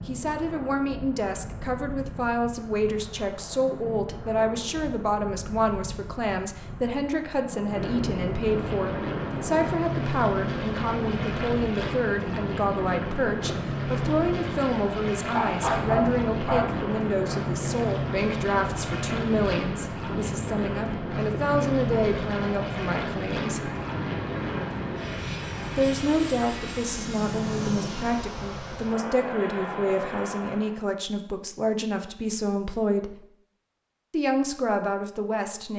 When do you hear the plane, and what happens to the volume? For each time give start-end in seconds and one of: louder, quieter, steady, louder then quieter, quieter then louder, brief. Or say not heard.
8.4-30.8 steady.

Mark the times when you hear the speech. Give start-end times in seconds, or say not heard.
0.1-23.7, 25.8-33.2, 34.1-35.7.